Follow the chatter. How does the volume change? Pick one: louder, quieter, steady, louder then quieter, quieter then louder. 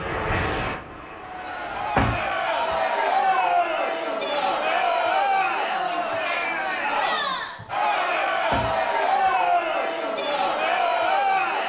steady.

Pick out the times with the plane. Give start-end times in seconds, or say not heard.
0.0-2.1.